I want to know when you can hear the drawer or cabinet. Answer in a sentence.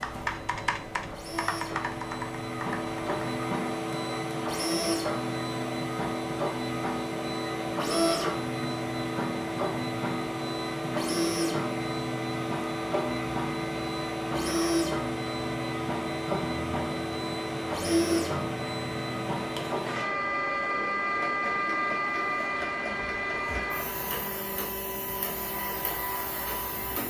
The drawer or cabinet can't be heard in this clip.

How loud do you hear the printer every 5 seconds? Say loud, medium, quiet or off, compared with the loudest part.
loud, loud, loud, loud, loud, medium.